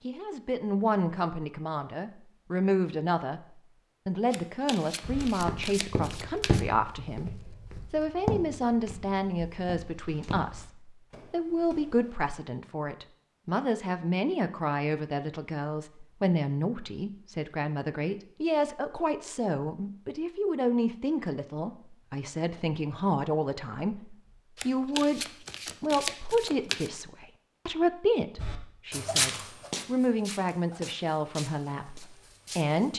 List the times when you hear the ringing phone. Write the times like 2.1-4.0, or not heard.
not heard.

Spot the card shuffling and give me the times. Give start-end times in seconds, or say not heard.
4.3-6.7, 24.6-26.9.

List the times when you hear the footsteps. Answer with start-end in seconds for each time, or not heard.
5.0-12.1, 28.4-32.9.